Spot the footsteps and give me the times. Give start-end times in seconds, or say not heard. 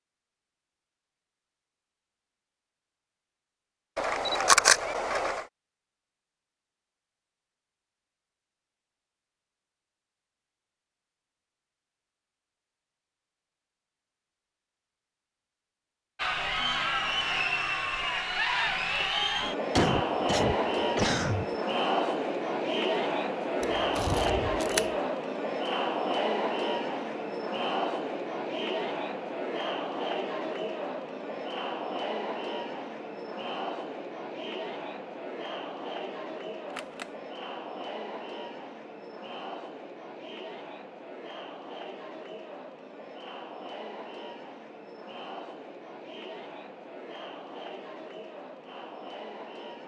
not heard.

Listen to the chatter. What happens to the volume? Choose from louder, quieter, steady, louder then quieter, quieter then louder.
quieter.